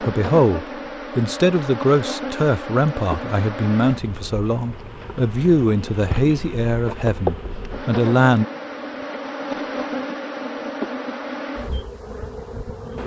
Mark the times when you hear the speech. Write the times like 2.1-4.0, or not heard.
0.0-8.4.